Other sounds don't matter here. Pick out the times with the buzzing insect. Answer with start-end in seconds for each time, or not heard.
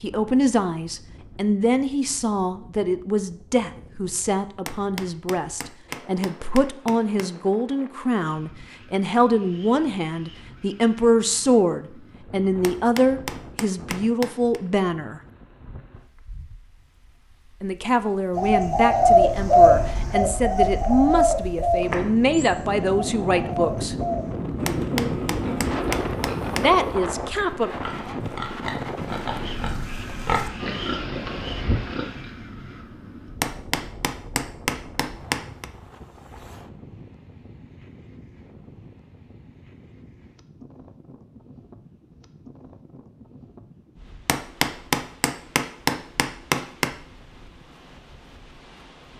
not heard.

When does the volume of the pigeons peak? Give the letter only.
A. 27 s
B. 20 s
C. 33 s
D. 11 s
B.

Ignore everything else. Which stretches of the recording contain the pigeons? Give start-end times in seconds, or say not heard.
18.4-25.9.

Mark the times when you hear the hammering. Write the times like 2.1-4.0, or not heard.
4.7-7.3, 12.6-14.6, 24.6-26.7, 33.4-35.7, 44.2-46.9.